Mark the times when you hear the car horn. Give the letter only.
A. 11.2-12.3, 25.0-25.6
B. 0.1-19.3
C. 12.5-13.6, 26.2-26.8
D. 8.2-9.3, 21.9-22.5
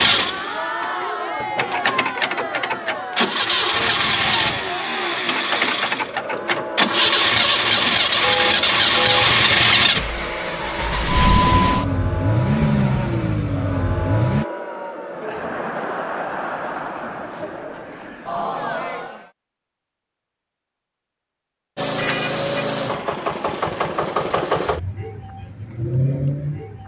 D.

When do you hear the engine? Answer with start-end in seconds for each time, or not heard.
0.0-14.4, 21.8-26.8.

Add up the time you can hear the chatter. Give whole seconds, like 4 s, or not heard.
19 s.